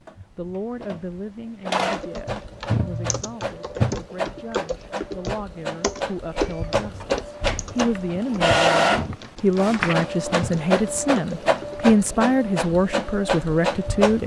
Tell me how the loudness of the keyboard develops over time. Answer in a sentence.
The loudness of the keyboard goes down.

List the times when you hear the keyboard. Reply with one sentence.
You can hear the keyboard from 1.9 to 11.8 s.